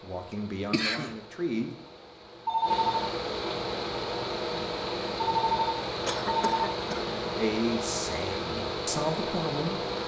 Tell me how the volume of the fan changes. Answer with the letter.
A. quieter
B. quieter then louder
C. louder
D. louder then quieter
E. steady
C.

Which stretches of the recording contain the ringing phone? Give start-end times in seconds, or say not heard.
2.5-3.0, 5.2-6.8.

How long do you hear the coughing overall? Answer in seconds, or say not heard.
2 s.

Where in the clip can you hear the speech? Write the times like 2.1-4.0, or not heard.
0.0-1.7, 7.3-9.9.